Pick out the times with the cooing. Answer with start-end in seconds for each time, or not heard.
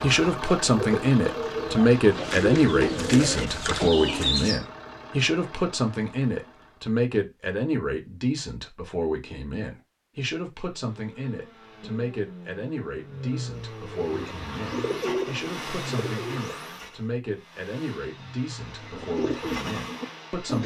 0.0-4.6, 13.9-16.5, 18.9-20.6.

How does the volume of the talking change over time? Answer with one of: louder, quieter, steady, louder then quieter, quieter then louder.
quieter.